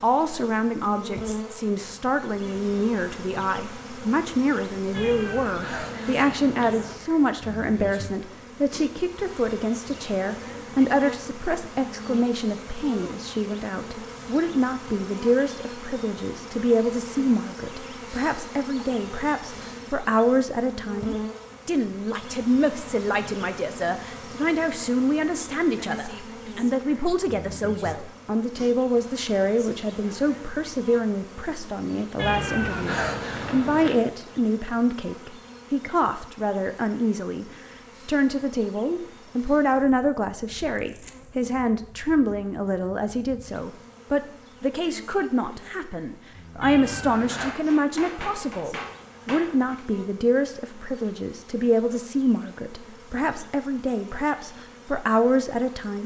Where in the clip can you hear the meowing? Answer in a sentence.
The meowing can be heard from 4.9 to 7.0 s, from 32.1 to 34.0 s and from 46.6 to 47.5 s.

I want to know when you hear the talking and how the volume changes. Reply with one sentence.
The talking can be heard from 0.0 to 56.0 s, at a steady volume.